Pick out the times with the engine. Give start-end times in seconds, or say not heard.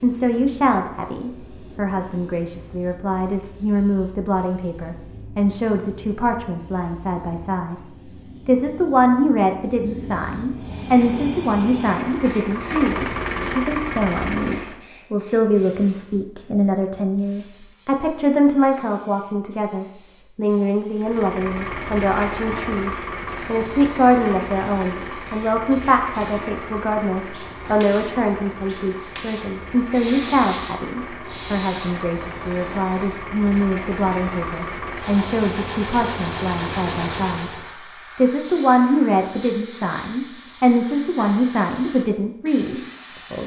10.5-14.8, 20.9-37.7.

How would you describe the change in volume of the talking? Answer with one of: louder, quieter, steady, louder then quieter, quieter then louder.
steady.